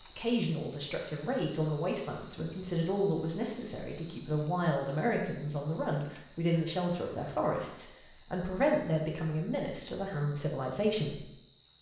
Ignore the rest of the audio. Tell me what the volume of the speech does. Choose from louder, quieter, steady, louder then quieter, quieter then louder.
steady.